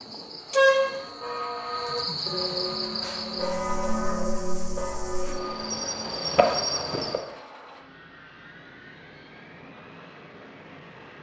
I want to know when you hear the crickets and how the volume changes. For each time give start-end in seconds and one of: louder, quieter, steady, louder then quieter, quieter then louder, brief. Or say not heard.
0.0-7.2 quieter then louder.